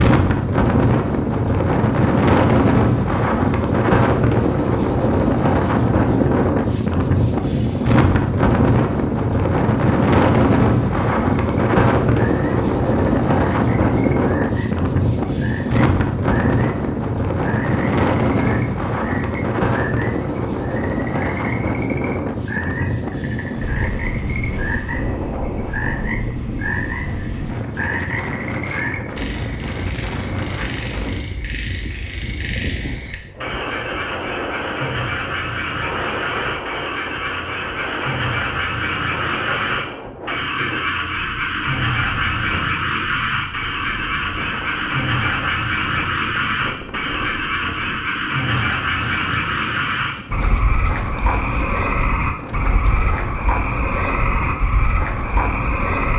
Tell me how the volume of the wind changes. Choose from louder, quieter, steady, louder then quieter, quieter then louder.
quieter.